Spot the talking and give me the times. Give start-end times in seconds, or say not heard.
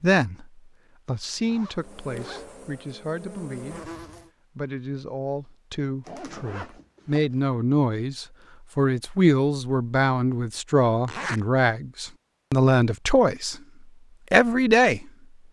0.0-4.0, 4.5-13.6, 14.3-15.1.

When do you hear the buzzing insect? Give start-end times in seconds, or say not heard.
1.8-4.3.